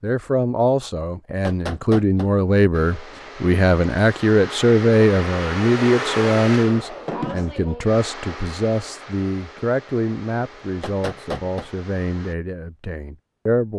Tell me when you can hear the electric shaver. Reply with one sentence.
You can't hear the electric shaver here.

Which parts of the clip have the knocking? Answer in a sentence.
The knocking can be heard from 1.4 to 2.3 s and from 10.8 to 11.7 s.